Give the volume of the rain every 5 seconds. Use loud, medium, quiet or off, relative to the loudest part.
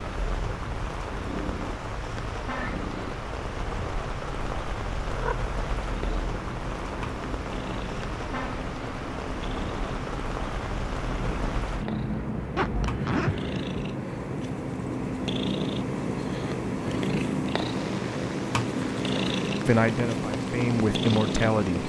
loud, loud, loud, medium, medium.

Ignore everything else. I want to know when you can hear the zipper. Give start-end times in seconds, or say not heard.
12.6-13.7.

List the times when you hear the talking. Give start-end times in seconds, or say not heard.
19.6-21.8.